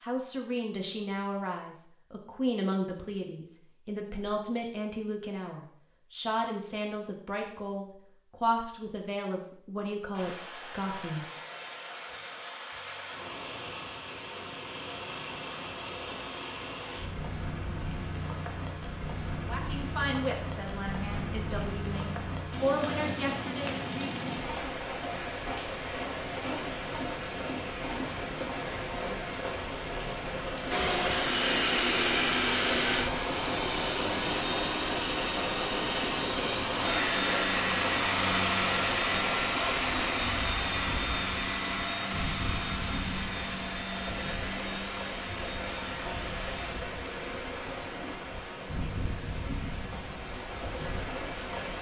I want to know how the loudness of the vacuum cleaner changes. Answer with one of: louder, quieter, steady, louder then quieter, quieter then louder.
quieter.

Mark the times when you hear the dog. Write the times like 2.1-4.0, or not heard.
not heard.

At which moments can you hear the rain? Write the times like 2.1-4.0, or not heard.
10.1-51.7.